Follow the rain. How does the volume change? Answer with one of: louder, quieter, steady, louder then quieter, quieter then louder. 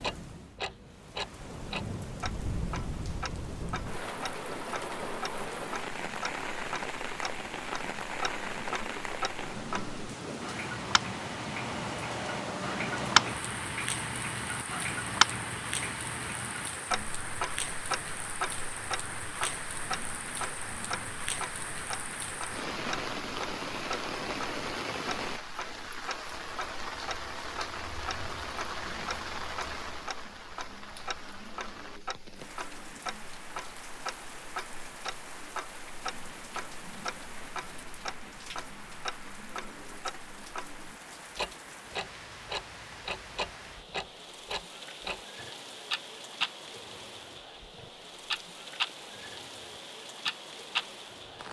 quieter.